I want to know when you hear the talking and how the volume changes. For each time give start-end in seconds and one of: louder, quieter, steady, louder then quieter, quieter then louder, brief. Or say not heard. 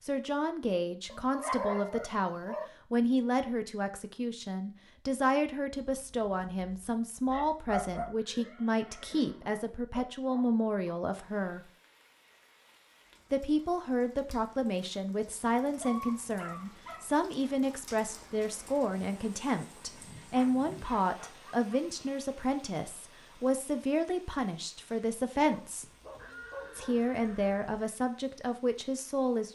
0.0-11.6 steady
13.3-25.9 steady
26.8-29.5 brief.